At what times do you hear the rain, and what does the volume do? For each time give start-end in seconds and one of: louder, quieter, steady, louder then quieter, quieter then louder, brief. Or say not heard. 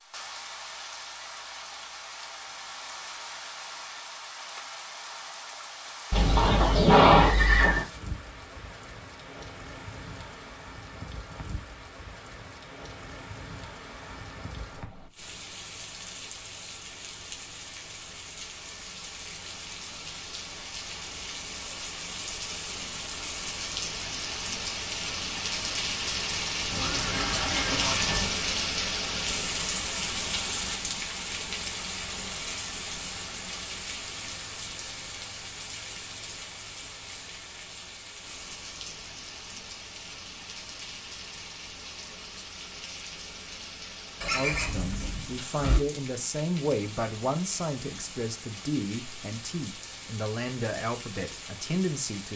0.0-52.3 louder then quieter.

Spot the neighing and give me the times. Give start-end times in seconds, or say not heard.
6.1-7.8, 26.7-28.2, 44.2-45.8.